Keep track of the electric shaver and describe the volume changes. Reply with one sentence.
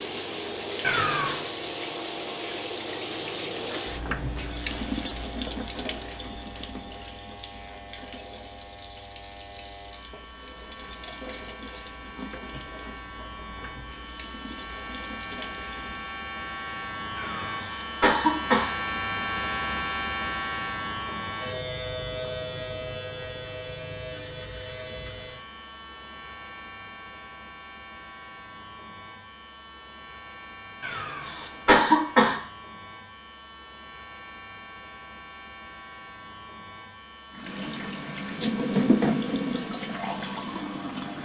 The loudness of the electric shaver goes up, then down.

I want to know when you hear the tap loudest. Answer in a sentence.
The volume of the tap peaks at 39 seconds.